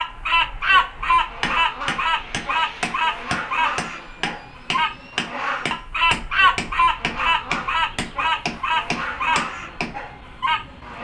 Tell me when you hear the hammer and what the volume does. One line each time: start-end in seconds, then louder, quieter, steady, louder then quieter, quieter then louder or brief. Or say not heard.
1.4-9.9 steady.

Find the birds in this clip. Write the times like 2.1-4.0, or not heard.
0.0-10.9.